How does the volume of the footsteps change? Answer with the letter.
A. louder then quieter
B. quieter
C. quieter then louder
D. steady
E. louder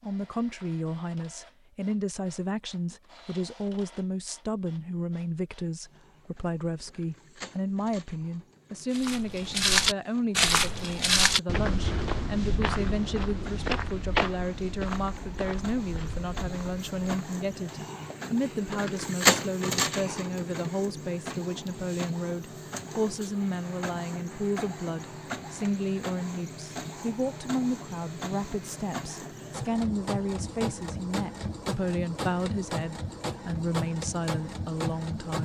B.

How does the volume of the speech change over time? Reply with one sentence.
The loudness of the speech stays about the same.